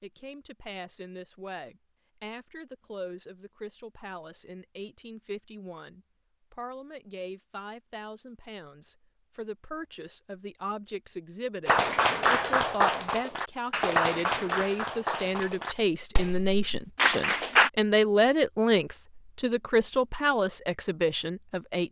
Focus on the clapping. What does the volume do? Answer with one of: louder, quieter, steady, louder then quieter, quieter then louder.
quieter then louder.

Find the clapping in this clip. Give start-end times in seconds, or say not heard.
11.7-17.7.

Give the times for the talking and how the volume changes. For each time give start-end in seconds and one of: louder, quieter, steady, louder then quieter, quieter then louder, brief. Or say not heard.
0.0-21.8 louder.